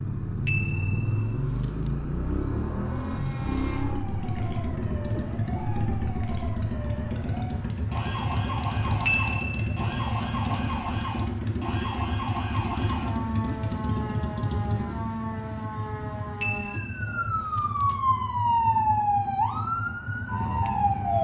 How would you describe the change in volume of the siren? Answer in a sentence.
The volume of the siren goes up.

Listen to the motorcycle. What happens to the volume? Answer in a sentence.
The volume of the motorcycle goes down.